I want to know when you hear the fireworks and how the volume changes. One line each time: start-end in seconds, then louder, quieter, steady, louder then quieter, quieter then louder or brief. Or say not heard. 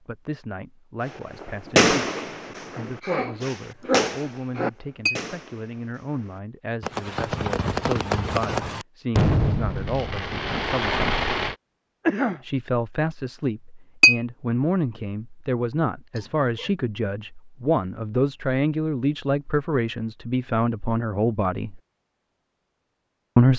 1.1-11.6 quieter then louder.